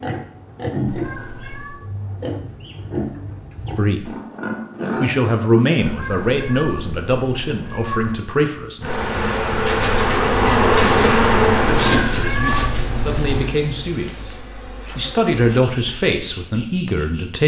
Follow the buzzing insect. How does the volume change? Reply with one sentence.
The loudness of the buzzing insect goes down, then up.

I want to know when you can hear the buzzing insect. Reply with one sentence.
The buzzing insect can be heard from 8.8 to 17.4 s.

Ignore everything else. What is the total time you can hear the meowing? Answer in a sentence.
The meowing can be heard for 5 seconds in total.